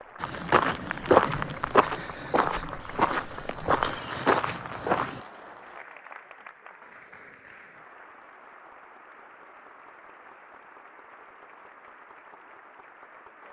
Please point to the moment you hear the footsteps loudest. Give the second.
1 s.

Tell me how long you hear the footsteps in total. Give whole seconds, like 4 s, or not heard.
5 s.